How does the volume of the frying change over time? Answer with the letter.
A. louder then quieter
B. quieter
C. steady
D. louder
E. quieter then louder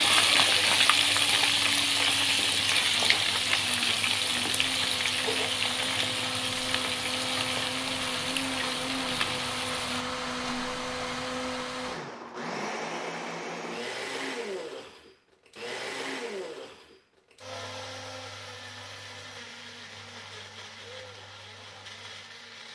B.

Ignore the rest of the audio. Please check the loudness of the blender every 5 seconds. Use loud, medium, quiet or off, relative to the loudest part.
medium, loud, loud, medium, medium.